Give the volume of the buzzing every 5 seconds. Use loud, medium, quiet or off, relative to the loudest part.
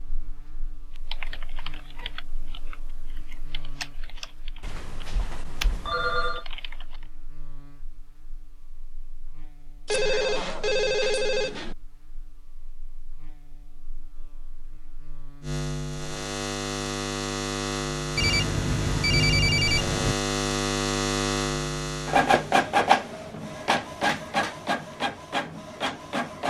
quiet, quiet, quiet, loud, loud, off.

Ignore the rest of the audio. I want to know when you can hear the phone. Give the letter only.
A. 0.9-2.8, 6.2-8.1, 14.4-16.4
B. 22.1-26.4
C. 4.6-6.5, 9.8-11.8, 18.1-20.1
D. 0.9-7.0
C.